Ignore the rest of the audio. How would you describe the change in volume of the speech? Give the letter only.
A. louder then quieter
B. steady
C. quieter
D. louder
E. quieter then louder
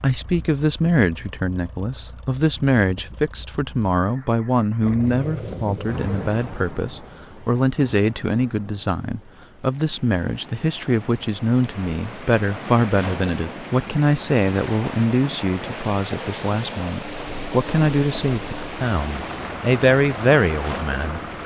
B.